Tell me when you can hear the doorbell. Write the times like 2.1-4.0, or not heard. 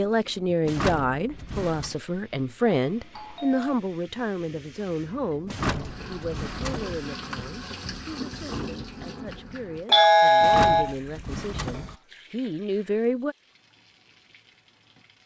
2.9-3.8, 9.9-10.9.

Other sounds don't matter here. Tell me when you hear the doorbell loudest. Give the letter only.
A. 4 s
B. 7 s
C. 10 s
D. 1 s
C.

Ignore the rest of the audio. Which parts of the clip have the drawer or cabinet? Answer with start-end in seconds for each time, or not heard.
0.7-1.9, 5.5-7.0, 10.4-11.9.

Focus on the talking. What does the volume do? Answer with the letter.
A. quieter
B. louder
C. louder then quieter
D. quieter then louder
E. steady
D.